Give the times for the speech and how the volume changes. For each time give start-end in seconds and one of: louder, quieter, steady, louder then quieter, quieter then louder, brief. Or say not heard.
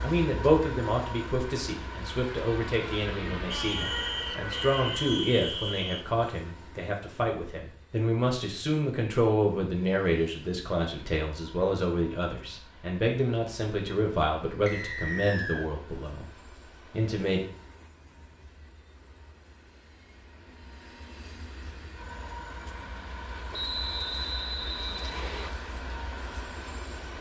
0.0-16.3 steady
16.9-17.4 brief.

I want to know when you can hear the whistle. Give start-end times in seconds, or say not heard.
3.5-6.0, 14.7-15.7, 23.5-25.5.